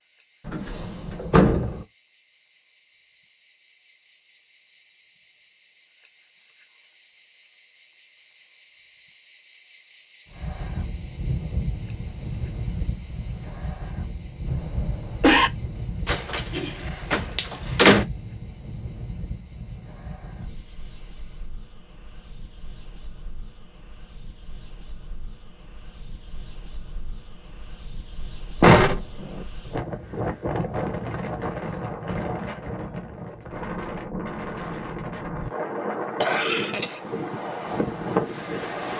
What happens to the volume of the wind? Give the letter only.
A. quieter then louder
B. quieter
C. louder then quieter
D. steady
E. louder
A.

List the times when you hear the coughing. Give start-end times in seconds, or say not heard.
14.4-15.5, 36.2-37.0.